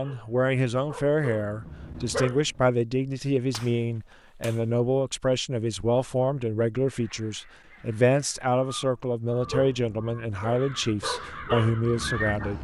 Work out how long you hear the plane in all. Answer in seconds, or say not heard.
not heard.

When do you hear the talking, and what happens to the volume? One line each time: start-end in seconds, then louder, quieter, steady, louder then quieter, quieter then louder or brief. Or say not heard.
0.0-12.5 steady.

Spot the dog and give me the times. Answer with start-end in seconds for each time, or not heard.
0.0-2.7, 9.4-12.5.